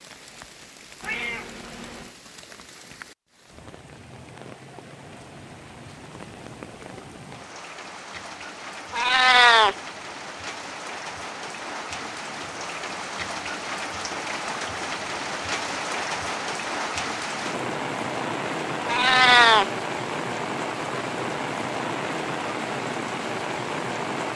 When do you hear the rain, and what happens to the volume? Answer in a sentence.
You can hear the rain from 0.0 to 24.3 s, getting louder.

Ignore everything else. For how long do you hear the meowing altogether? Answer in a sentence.
The meowing can be heard for 3 seconds in total.